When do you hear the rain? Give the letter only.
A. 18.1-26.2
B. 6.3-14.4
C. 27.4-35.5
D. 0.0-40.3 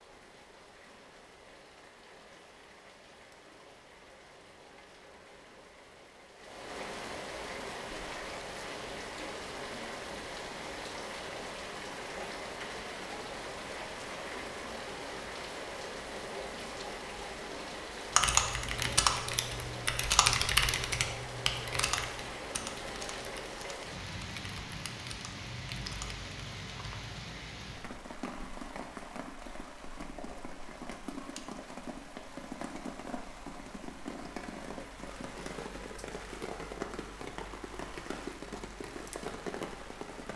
D.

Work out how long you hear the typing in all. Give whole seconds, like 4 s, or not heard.
8 s.